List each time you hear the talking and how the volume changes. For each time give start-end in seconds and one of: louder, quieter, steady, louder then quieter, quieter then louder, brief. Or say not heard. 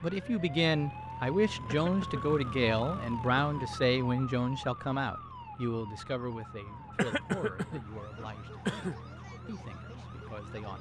0.0-10.7 quieter.